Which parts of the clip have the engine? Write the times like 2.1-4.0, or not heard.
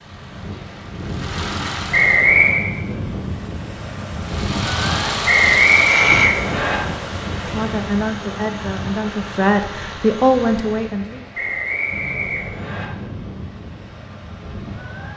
0.0-2.4, 4.2-11.0.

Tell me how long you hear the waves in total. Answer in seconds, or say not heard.
15 s.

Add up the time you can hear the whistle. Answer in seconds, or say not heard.
4 s.